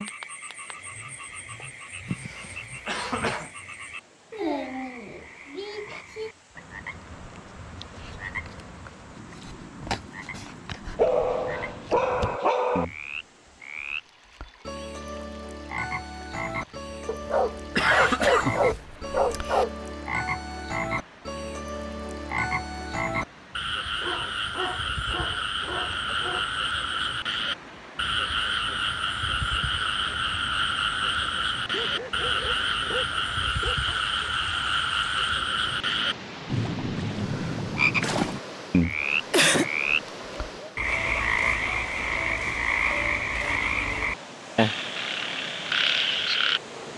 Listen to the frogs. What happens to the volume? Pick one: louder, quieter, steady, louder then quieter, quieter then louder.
louder.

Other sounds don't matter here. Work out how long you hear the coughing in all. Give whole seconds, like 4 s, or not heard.
4 s.